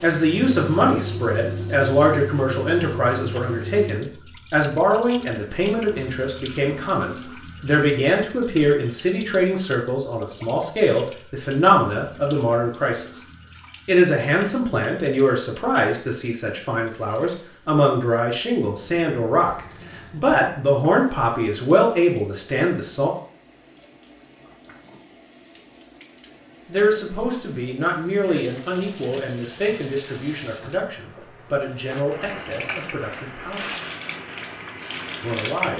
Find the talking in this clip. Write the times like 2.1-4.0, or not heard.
0.0-13.2, 13.8-23.1, 26.6-33.7, 35.2-35.7.